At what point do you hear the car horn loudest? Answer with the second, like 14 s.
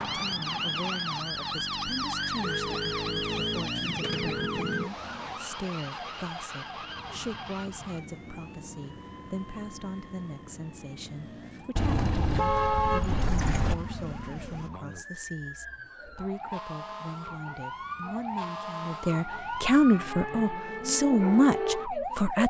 13 s.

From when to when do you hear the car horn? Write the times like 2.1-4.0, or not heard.
2.4-4.9, 11.8-13.8.